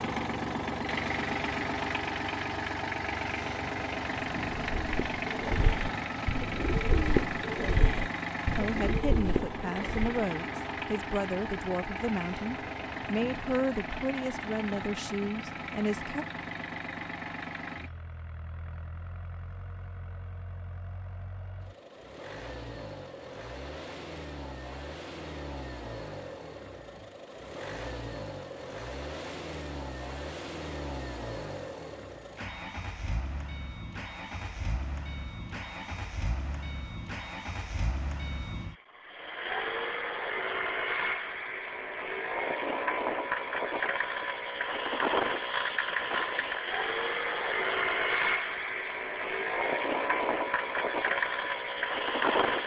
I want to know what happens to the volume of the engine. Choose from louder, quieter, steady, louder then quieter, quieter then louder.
quieter then louder.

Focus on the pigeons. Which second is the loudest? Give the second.
7 s.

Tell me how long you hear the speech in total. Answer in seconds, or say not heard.
8 s.